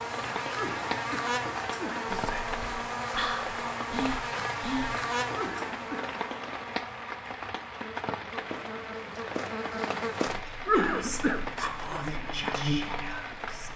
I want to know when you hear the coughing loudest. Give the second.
11 s.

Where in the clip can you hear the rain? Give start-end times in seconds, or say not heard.
0.0-13.7.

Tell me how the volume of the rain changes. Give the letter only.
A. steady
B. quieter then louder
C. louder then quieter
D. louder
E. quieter
A.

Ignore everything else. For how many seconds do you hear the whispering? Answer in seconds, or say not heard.
6 s.